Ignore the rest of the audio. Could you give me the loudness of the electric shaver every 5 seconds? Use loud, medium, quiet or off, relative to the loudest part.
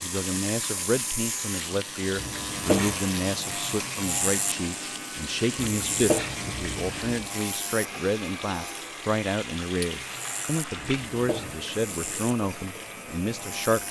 loud, loud, medium.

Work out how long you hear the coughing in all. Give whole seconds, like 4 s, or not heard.
3 s.